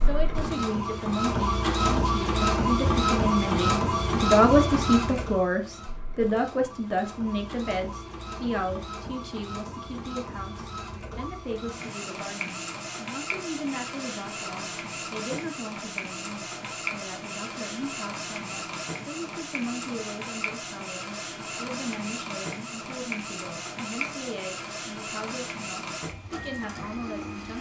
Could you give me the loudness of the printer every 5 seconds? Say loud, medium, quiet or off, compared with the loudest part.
loud, quiet, medium, medium, medium, medium.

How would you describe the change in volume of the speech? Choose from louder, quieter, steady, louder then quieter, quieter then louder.
quieter.